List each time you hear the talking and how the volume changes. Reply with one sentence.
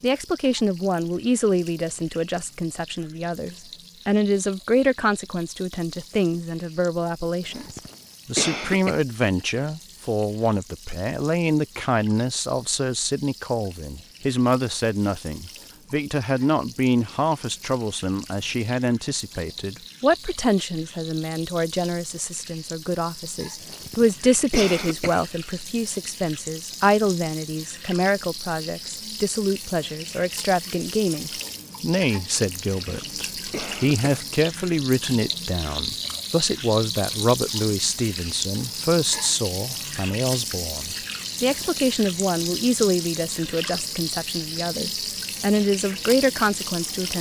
The talking can be heard from 0.0 to 47.1 s, at a steady volume.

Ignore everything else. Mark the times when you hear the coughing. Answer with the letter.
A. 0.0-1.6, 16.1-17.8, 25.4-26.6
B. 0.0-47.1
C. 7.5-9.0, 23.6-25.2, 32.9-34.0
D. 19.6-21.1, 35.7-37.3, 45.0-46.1
C.